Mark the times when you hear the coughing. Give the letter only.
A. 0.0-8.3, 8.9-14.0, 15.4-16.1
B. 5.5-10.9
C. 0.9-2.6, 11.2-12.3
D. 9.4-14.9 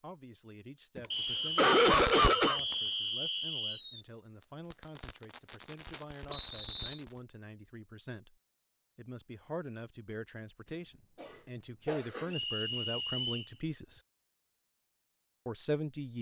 C.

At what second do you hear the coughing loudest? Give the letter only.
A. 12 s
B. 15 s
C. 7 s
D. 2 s
D.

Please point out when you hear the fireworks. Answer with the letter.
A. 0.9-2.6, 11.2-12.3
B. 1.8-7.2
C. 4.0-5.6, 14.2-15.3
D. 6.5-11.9
B.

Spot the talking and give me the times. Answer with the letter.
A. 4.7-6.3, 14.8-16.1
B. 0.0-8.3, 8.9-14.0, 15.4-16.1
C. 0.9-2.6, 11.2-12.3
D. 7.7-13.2
B.